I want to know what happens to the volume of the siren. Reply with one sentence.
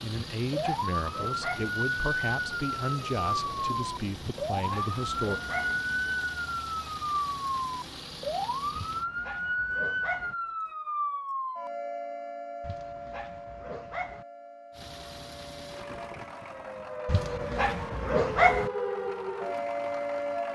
The volume of the siren goes down, then up.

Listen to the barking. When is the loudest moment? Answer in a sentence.
The loudest moment of the barking is at 18 seconds.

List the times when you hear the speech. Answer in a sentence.
You can hear the speech from 0.0 to 5.4 s.